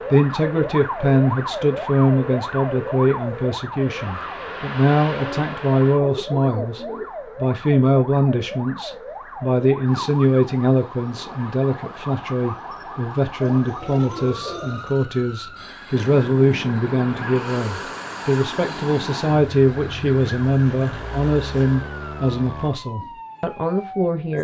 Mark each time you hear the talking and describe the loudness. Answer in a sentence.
The talking can be heard from 0.0 to 24.3 s, at a steady volume.